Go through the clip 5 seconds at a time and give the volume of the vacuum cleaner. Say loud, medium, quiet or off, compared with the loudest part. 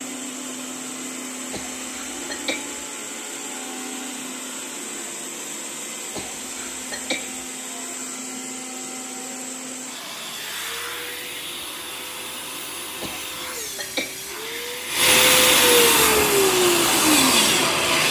quiet, quiet, quiet, loud.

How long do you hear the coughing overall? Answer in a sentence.
The coughing can be heard for 4 seconds in total.